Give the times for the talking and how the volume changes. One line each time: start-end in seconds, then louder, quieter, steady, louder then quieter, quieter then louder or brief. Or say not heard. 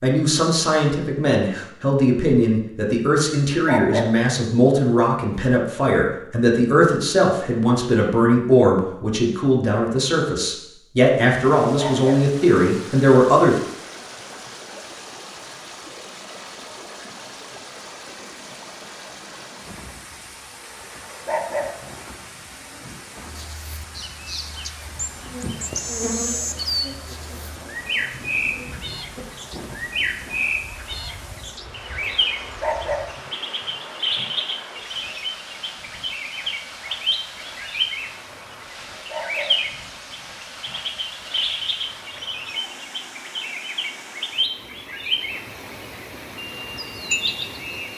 0.0-13.6 steady.